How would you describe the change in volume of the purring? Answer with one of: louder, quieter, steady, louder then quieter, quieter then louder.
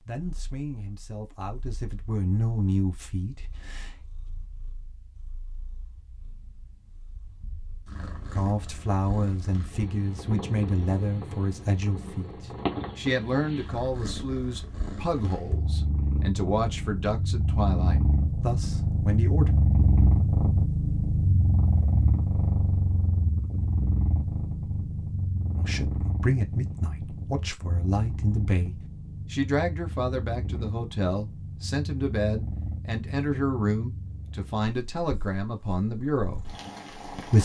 louder then quieter.